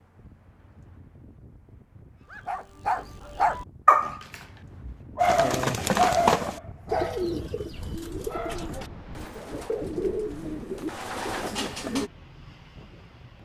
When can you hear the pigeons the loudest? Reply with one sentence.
The volume of the pigeons peaks at 6 seconds.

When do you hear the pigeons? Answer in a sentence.
You can hear the pigeons from 5.2 to 12.1 s.